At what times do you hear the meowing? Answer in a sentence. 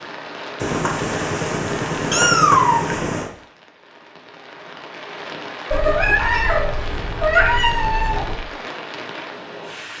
You can hear the meowing from 0.6 to 3.2 s and from 5.7 to 8.4 s.